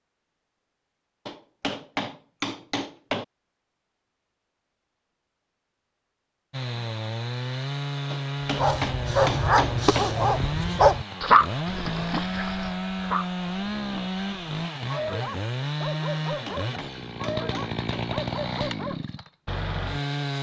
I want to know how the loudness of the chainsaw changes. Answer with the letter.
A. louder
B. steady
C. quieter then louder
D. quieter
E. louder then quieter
B.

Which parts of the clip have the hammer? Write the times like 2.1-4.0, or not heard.
1.2-3.2, 8.1-10.1, 16.1-18.1.